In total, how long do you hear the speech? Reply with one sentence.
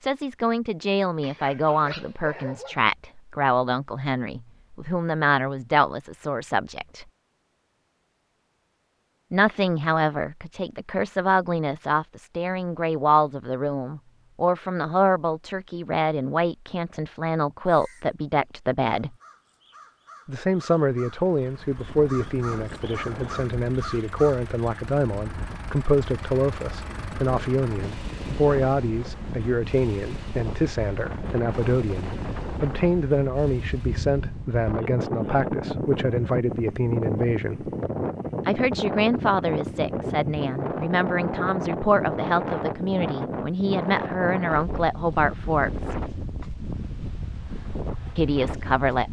The speech can be heard for 43 seconds in total.